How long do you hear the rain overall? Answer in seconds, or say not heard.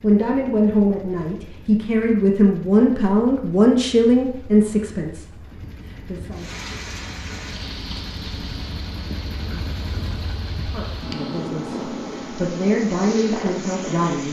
8 s.